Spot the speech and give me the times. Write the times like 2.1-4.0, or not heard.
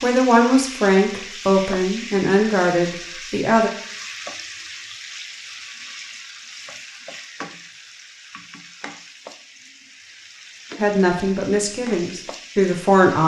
0.0-3.7, 10.8-13.2.